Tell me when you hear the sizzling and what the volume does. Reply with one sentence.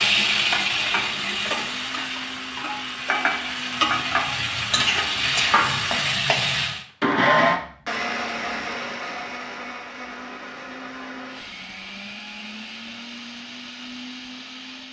The sizzling can be heard from 0.0 to 6.8 s, getting quieter then louder.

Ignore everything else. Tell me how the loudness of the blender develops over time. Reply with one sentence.
The loudness of the blender goes up, then down.